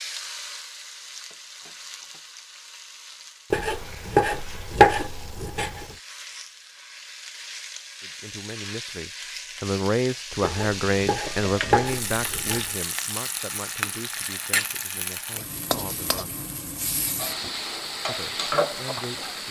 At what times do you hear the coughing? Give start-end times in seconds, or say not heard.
not heard.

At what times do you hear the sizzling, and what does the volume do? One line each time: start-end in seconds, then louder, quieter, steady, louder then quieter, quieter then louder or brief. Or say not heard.
0.0-19.4 louder.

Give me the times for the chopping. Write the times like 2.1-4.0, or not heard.
3.5-6.0, 10.4-12.7.